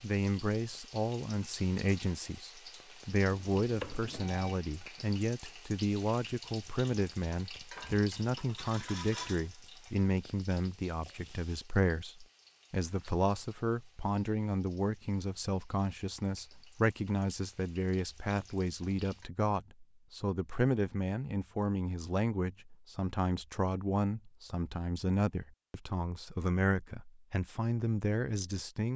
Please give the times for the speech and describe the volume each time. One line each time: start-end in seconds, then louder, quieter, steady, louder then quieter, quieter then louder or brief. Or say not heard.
0.0-28.9 steady.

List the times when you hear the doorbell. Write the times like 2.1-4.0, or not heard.
3.3-4.6.